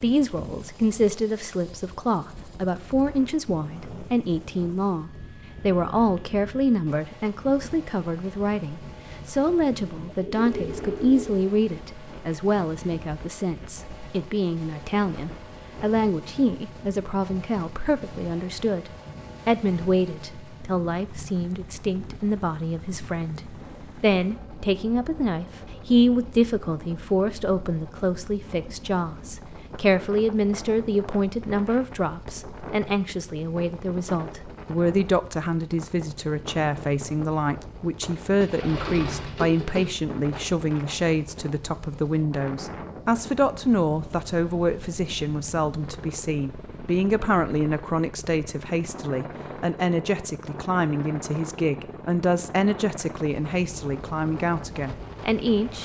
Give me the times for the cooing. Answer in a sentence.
The cooing can be heard from 9.9 to 11.3 s and from 38.4 to 39.9 s.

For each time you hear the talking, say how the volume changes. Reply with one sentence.
The talking can be heard from 0.0 to 55.7 s, at a steady volume.